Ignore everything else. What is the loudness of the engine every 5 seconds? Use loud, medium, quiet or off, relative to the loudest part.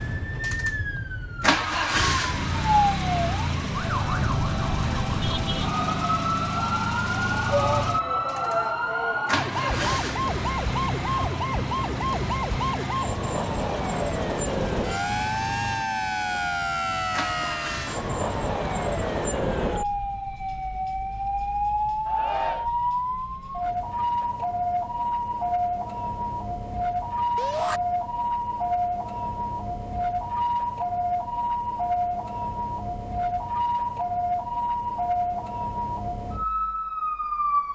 loud, loud, medium, medium, off, off, off, off.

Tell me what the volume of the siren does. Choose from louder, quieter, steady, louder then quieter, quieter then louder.
steady.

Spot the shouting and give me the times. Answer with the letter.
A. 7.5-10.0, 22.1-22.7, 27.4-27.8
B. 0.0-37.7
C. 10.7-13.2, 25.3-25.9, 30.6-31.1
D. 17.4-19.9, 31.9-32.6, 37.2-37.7
A.